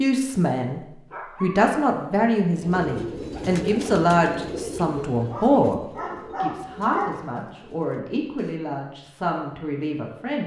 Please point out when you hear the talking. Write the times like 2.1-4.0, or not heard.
0.0-0.8, 1.4-5.8, 6.4-10.4.